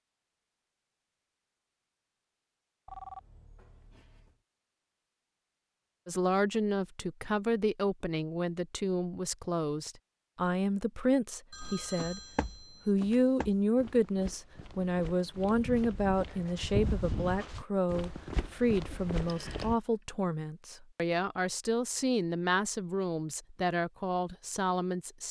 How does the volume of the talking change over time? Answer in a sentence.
The loudness of the talking stays about the same.